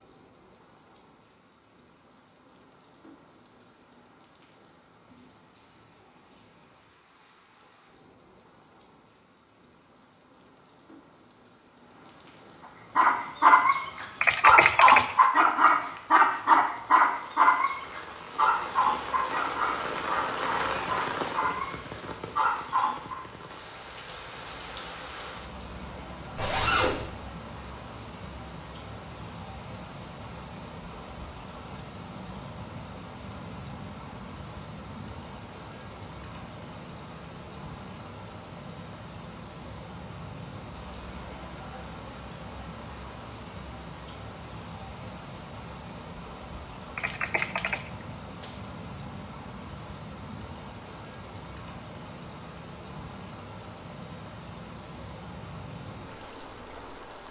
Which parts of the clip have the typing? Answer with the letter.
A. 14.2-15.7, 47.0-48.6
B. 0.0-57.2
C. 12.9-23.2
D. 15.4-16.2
A.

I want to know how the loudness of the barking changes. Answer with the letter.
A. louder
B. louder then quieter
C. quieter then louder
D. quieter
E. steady
D.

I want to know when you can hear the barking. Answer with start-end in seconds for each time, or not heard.
12.9-23.2.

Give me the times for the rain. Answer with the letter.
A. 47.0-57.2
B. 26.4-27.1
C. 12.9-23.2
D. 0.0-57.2
D.